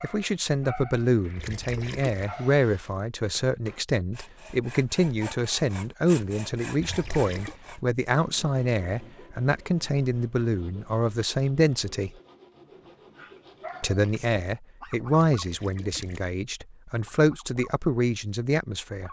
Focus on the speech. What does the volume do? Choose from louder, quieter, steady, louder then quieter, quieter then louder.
steady.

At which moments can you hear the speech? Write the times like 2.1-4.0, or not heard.
0.0-12.1, 13.8-19.0.